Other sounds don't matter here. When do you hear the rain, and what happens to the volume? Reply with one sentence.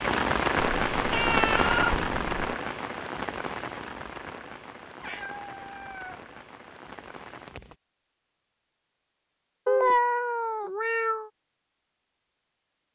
The rain can be heard from 0.0 to 7.8 s, getting quieter.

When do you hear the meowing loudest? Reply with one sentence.
The loudest moment of the meowing is at 10 seconds.